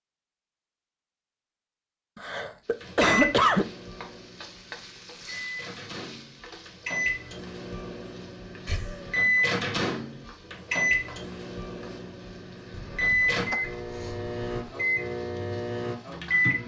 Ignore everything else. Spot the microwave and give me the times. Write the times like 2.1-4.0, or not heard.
2.8-16.6.